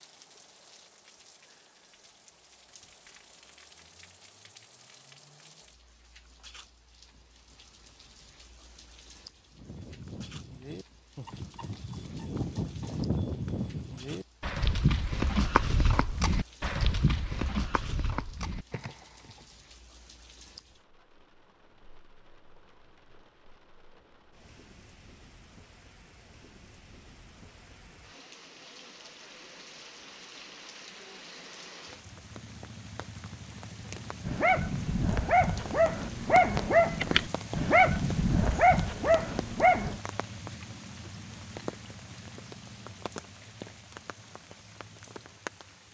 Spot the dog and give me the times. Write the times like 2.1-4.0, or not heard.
34.2-40.0.